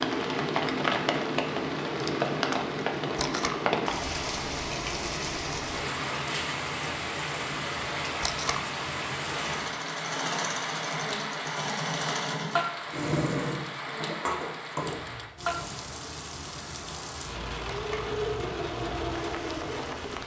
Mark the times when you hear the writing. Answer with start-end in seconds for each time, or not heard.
not heard.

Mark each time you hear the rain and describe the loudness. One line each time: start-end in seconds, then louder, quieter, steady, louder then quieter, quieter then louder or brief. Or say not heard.
0.0-20.2 quieter.